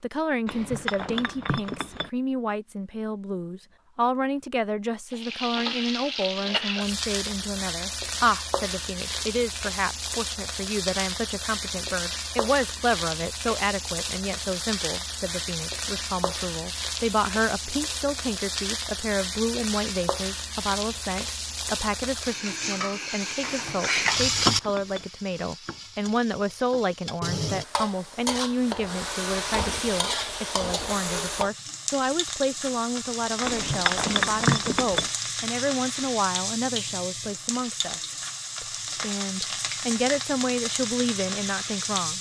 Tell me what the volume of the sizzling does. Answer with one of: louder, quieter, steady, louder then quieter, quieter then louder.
steady.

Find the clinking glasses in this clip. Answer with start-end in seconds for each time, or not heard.
0.5-2.1, 23.5-25.1, 33.5-35.1.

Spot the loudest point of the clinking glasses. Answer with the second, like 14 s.
34 s.